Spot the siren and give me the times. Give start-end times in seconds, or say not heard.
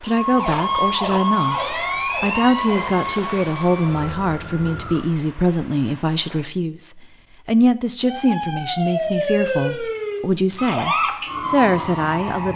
0.1-5.0, 8.0-12.5.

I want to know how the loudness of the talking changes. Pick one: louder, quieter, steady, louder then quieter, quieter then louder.
steady.